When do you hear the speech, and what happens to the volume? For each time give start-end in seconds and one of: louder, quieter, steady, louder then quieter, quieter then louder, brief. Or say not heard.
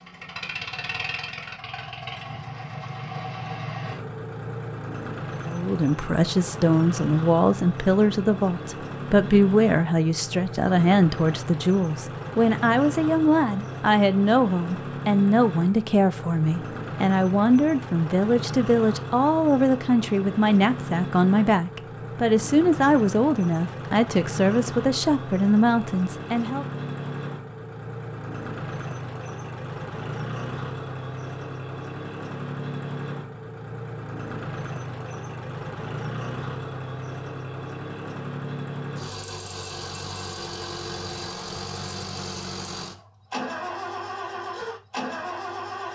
5.5-26.6 steady.